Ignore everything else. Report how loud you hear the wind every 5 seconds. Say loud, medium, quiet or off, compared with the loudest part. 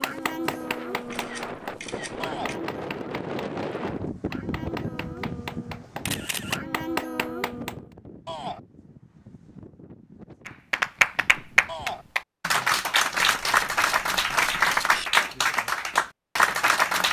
loud, medium, quiet, off.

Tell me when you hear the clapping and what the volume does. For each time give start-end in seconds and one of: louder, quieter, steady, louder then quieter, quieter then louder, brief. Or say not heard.
0.0-7.8 quieter then louder
10.4-17.0 steady.